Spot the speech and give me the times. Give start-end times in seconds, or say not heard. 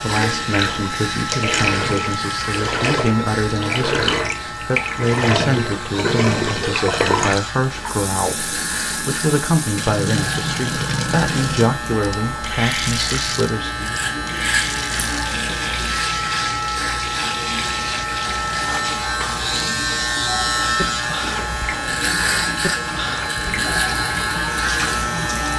0.0-13.9.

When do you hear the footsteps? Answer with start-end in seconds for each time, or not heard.
not heard.